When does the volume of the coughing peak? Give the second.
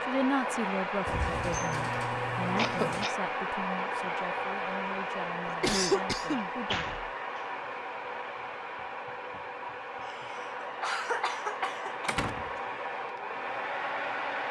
6 s.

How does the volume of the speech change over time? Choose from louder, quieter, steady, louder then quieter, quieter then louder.
quieter.